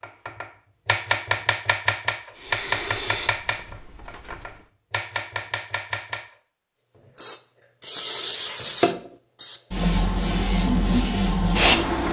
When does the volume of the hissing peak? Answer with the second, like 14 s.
11 s.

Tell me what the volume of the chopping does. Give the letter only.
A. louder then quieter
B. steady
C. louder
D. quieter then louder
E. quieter
D.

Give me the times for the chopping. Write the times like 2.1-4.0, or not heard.
0.0-6.2.